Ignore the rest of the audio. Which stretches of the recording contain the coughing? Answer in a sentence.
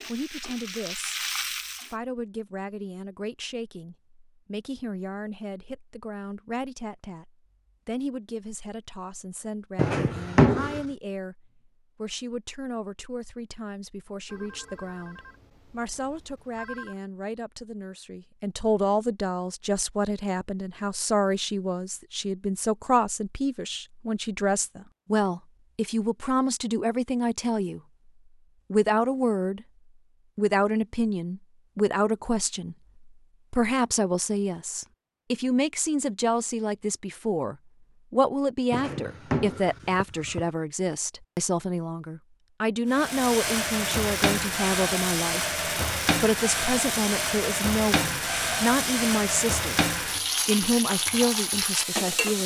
You can't hear the coughing here.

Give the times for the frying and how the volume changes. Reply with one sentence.
You can hear the frying briefly from 0.0 to 1.9 s; and from 42.9 to 52.4 s, at a steady volume.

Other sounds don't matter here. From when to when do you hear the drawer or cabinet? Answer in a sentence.
You can hear the drawer or cabinet from 9.8 to 10.8 s and from 38.7 to 40.5 s.